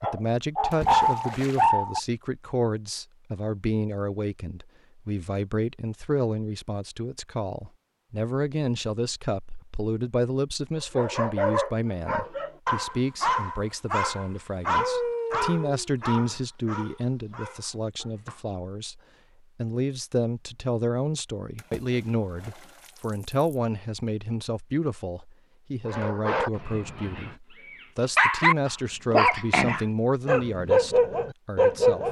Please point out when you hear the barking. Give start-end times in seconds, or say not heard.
0.0-2.0, 10.8-18.4, 25.9-32.0.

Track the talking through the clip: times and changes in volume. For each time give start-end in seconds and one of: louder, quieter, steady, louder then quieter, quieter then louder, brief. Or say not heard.
0.0-32.0 steady.